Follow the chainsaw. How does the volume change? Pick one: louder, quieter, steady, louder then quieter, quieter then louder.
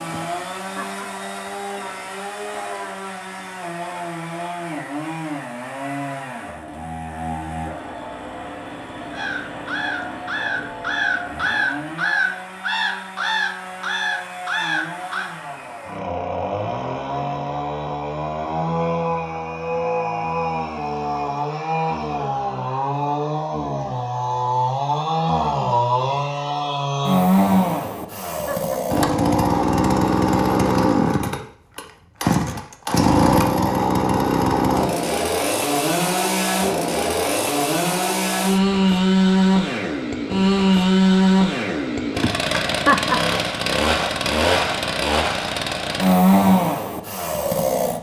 louder.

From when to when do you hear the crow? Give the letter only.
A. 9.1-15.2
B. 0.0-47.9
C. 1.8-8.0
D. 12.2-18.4
A.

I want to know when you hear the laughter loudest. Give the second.
43 s.